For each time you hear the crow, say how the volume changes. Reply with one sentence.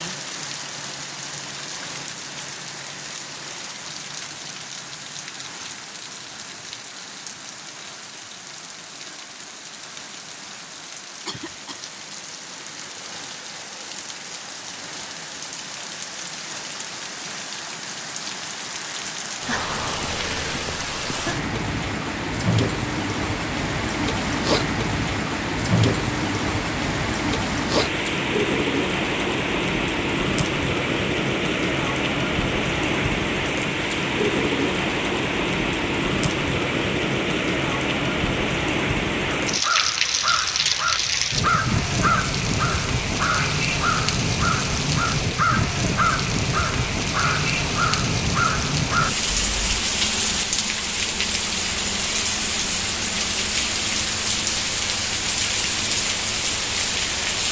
The crow can be heard from 39.5 to 49.8 s, at a steady volume.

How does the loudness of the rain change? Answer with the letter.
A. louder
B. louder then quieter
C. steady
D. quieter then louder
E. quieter
A.